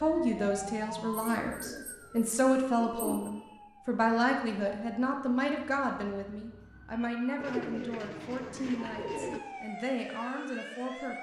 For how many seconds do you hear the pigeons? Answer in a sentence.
You can hear the pigeons for 4 seconds altogether.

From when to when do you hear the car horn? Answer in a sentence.
You can't hear the car horn here.